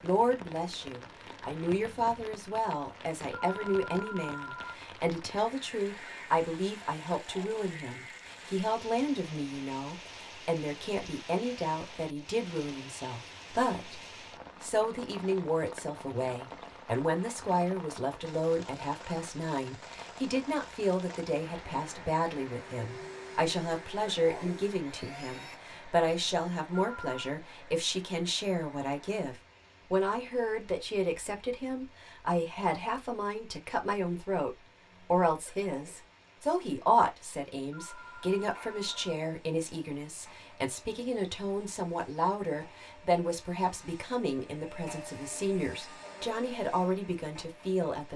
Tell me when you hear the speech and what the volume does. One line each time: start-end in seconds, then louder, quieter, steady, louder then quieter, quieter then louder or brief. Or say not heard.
0.0-14.0 steady
14.6-48.1 steady.